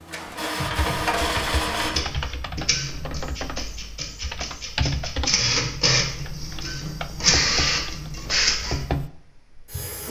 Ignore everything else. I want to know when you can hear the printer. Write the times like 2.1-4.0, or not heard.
0.0-10.0.